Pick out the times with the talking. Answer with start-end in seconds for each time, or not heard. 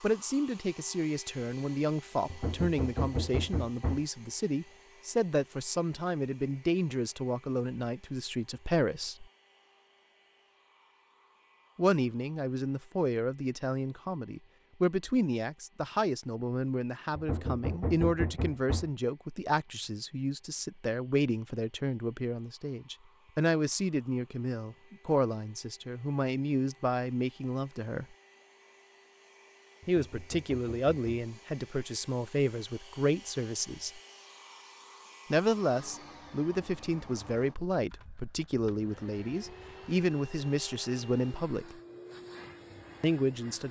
0.0-9.2, 11.8-28.1, 29.9-34.0, 35.3-41.8, 43.0-43.6.